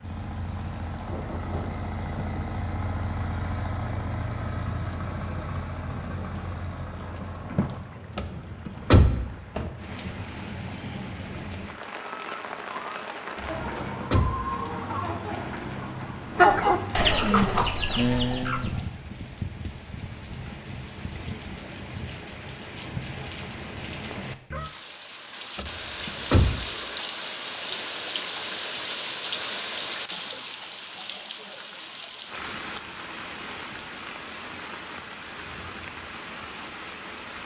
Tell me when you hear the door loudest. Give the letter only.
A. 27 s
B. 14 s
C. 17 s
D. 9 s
D.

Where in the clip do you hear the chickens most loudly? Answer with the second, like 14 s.
17 s.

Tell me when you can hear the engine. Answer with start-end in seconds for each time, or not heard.
0.0-7.8.